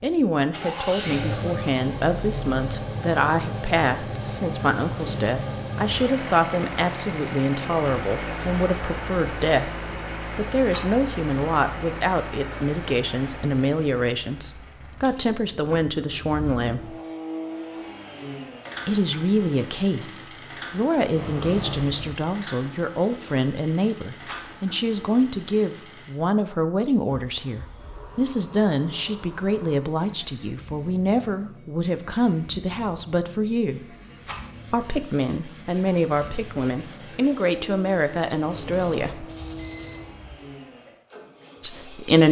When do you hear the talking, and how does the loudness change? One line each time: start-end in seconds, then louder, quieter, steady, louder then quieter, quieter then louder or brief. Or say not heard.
0.0-16.9 steady
18.9-34.0 steady
34.7-39.2 steady
41.6-42.2 brief.